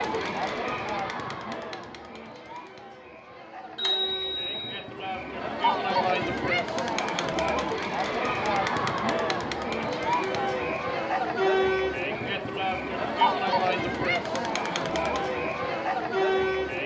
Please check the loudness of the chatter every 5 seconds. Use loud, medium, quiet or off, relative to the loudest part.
medium, loud, loud, loud.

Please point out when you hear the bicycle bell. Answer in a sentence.
The bicycle bell can be heard from 3.8 to 4.8 s.